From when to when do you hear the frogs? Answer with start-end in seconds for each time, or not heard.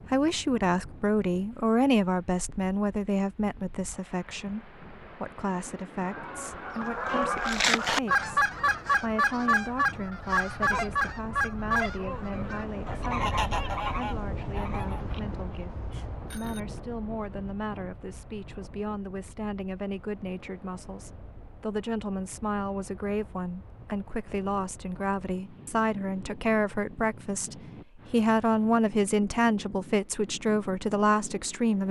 not heard.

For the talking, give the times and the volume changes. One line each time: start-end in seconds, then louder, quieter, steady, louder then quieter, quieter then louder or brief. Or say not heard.
0.0-31.8 quieter then louder.